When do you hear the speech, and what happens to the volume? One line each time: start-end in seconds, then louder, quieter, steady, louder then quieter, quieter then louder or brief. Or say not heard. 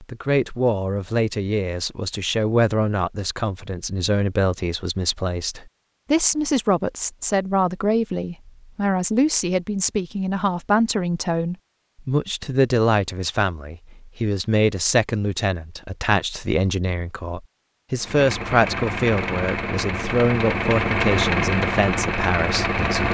0.0-23.0 steady.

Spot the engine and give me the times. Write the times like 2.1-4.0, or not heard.
17.9-23.0.